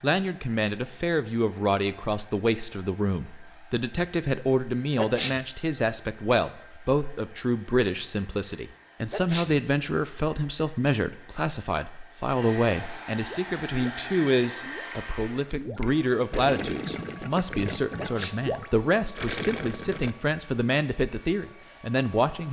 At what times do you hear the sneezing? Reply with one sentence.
You can hear the sneezing from 5.0 to 5.5 s, from 9.1 to 9.6 s and from 17.9 to 18.4 s.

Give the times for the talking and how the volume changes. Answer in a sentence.
You can hear the talking from 0.0 to 22.4 s, at a steady volume.